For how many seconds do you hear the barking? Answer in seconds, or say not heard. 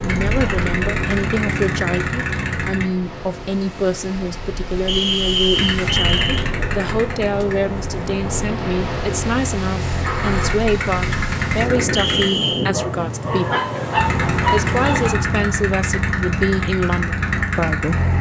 3 s.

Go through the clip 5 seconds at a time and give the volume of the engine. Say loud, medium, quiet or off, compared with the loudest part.
loud, medium, loud, loud.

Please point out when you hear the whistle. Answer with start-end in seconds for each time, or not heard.
4.8-6.5, 11.9-12.7.